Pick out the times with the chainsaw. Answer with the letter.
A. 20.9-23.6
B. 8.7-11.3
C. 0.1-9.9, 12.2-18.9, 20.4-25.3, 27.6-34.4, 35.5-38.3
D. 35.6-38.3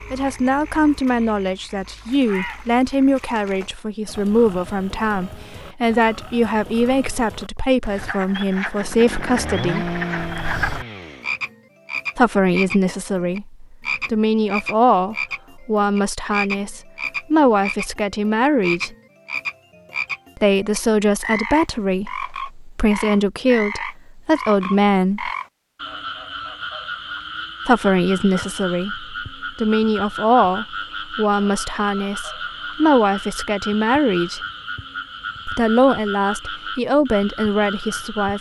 B.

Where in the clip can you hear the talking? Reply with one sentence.
The talking can be heard from 0.1 to 9.9 s, from 12.2 to 18.9 s, from 20.4 to 25.3 s, from 27.6 to 34.4 s and from 35.5 to 38.3 s.